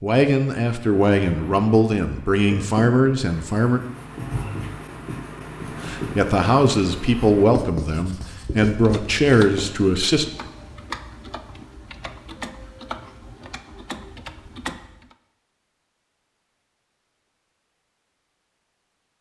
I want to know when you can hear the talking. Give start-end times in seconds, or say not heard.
0.0-3.8, 5.8-10.2.